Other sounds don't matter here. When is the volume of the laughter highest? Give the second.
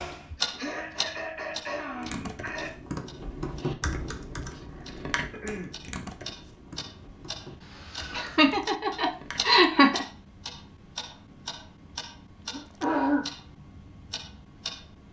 10 s.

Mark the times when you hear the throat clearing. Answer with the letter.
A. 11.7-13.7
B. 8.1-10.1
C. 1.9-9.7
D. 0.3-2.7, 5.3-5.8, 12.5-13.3
D.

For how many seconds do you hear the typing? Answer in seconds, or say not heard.
8 s.